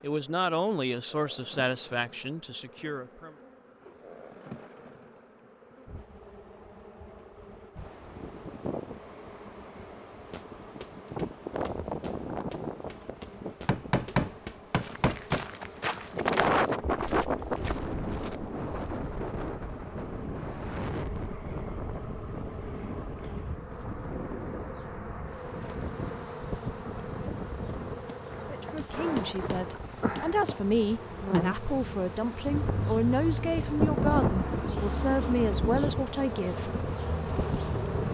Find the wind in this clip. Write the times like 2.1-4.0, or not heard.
7.8-38.0.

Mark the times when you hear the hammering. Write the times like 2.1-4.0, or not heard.
13.7-15.4, 28.8-30.9.